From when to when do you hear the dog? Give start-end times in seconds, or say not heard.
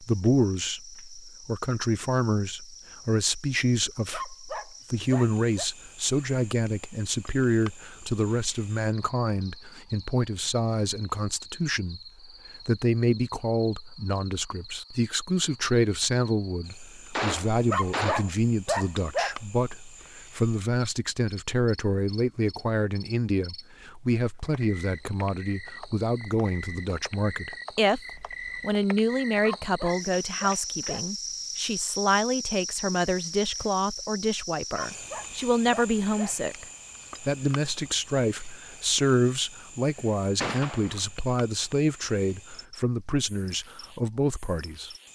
4.1-5.7, 17.7-19.4, 29.4-31.1, 34.7-36.4.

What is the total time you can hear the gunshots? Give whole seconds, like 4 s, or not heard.
2 s.